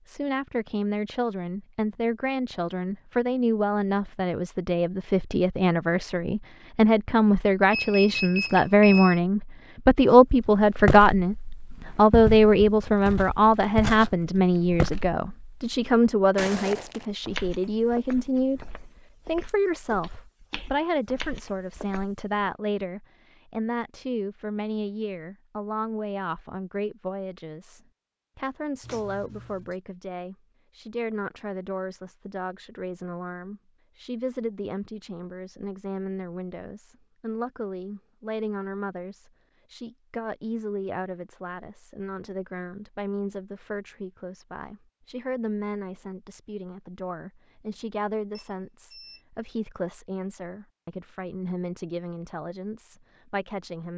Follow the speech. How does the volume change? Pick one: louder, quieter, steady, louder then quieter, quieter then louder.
quieter.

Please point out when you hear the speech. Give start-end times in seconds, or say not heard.
0.1-53.9.